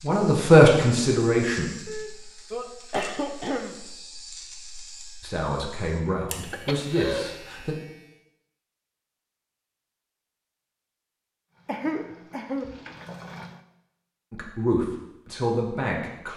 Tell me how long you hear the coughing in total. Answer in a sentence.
The coughing can be heard for 4 seconds in total.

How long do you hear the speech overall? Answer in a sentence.
You can hear the speech for 6 seconds altogether.